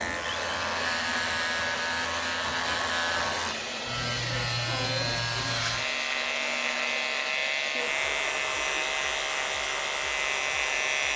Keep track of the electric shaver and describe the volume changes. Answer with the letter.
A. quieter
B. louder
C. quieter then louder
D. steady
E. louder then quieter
D.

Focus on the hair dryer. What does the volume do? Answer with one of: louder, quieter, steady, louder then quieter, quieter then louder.
steady.